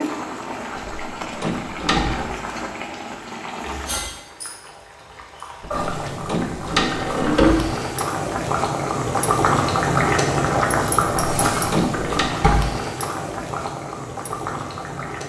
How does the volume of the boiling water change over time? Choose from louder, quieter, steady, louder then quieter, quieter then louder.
louder then quieter.